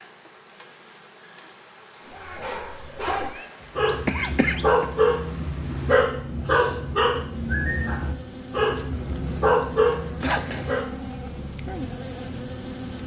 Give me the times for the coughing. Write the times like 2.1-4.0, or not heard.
3.4-4.8, 10.2-10.8.